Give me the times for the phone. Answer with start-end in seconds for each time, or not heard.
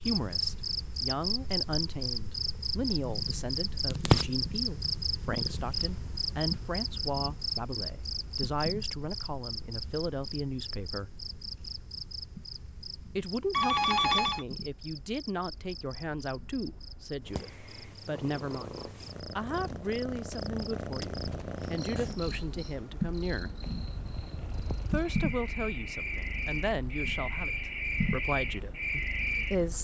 13.5-14.4.